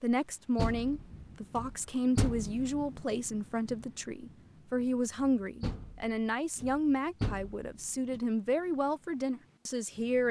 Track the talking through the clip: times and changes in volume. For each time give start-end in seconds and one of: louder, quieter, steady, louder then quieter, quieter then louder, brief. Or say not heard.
0.0-10.2 steady.